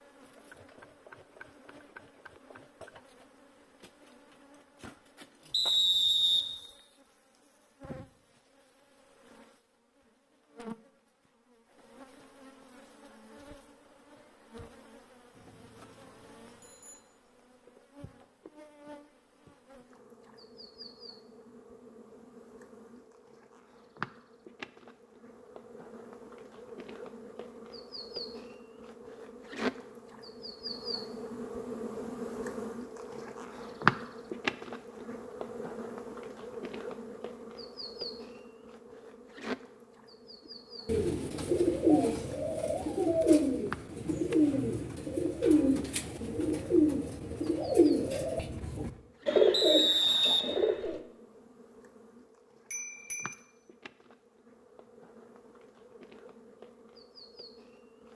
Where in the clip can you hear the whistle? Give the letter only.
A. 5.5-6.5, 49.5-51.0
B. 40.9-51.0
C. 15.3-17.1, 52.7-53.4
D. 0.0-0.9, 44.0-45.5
A.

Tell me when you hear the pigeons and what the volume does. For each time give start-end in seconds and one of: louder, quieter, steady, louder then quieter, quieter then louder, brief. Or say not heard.
40.9-51.0 steady.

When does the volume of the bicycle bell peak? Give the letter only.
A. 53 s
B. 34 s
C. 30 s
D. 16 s
A.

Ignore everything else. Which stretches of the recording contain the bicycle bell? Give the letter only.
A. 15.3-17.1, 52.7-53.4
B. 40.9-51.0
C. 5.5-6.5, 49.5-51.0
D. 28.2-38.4
A.